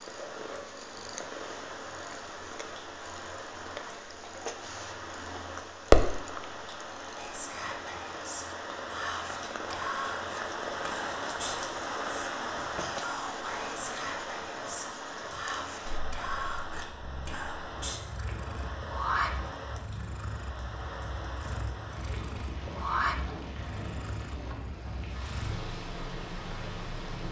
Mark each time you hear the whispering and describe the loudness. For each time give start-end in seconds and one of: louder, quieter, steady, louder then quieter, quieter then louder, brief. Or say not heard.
7.2-18.1 steady.